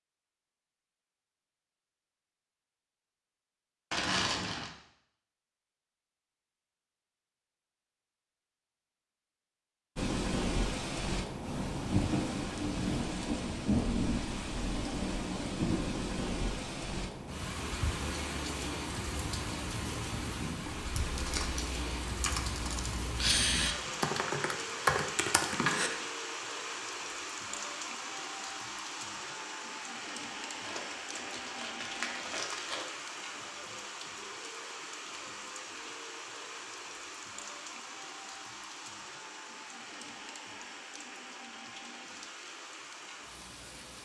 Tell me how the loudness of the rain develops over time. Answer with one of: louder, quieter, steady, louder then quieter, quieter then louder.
quieter.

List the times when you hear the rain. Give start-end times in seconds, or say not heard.
9.9-44.0.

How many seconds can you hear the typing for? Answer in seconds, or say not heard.
5 s.